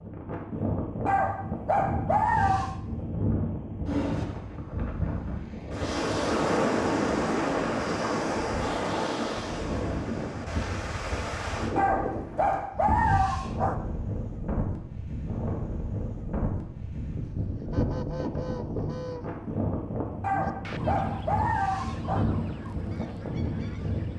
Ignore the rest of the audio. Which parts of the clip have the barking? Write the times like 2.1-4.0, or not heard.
1.1-2.8, 11.8-13.8, 20.2-22.2.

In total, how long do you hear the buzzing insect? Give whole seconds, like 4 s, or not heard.
not heard.